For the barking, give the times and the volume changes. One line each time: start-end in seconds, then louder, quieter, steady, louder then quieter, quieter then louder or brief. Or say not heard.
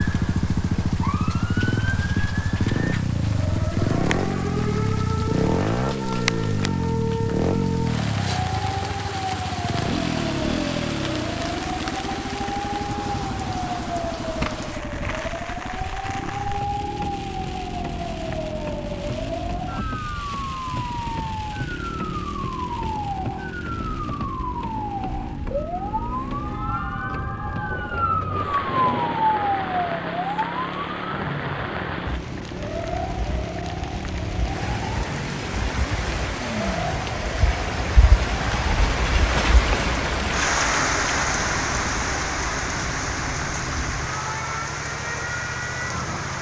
not heard.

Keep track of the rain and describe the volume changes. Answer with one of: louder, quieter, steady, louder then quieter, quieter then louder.
louder.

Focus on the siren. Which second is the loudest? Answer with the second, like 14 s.
29 s.